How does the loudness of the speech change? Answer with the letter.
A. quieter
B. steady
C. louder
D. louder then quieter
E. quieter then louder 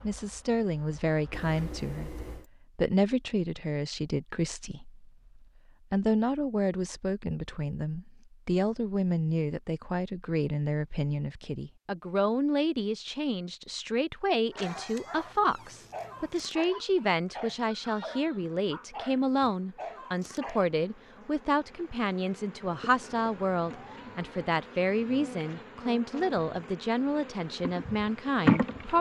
B.